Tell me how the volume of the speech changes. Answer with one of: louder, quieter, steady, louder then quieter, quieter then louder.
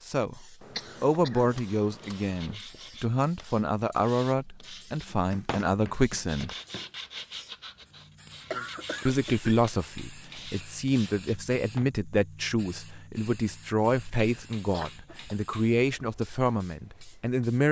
steady.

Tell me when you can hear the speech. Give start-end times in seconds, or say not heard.
0.1-6.5, 9.1-17.6.